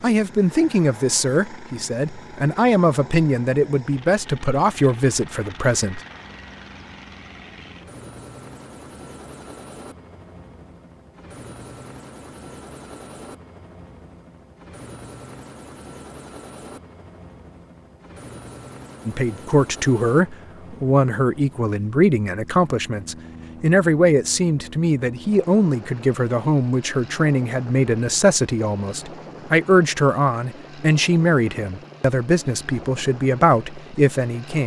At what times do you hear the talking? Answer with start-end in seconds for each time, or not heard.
0.0-6.0, 19.1-34.6.